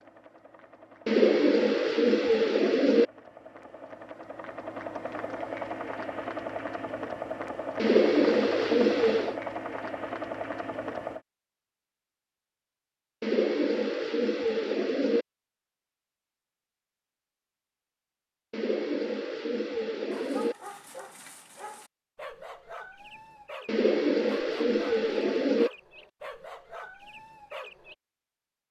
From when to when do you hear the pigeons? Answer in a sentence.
The pigeons can be heard from 1.1 to 3.0 s, from 7.8 to 9.4 s, from 13.2 to 15.2 s, from 18.5 to 20.6 s and from 23.6 to 25.7 s.